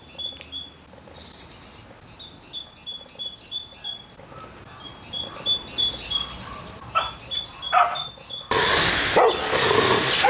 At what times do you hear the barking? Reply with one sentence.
You can hear the barking from 7.0 to 10.2 s.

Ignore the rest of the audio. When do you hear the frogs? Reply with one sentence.
You can't hear the frogs here.